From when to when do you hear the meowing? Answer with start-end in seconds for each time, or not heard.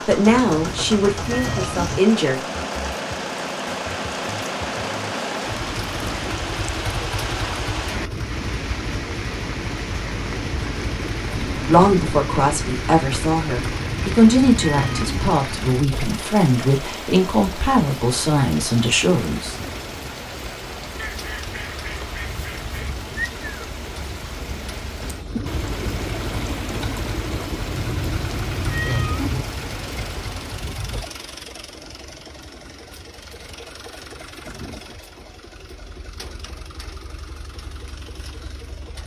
0.2-2.0, 13.6-15.3, 27.6-29.4.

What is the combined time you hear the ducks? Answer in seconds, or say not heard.
2 s.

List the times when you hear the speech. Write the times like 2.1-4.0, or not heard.
0.1-2.4, 11.5-19.6.